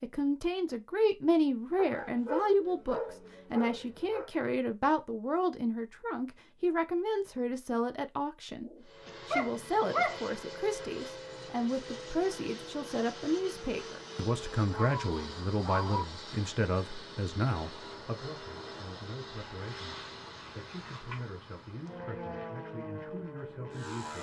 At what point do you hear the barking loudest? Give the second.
10 s.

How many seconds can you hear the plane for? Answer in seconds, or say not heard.
15 s.